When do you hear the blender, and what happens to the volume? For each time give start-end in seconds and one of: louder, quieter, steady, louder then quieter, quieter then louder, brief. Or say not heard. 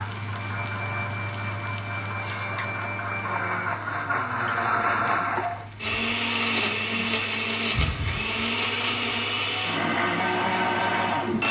0.0-11.4 louder.